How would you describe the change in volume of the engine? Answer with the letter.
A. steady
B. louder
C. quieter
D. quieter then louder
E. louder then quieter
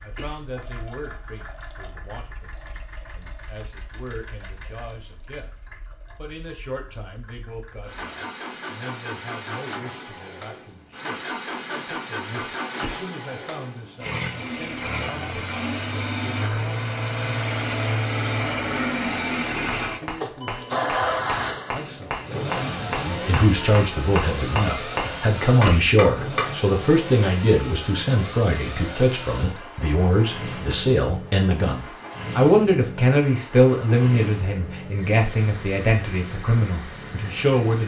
E.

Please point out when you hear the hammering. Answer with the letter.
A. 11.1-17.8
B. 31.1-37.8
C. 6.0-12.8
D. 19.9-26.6
D.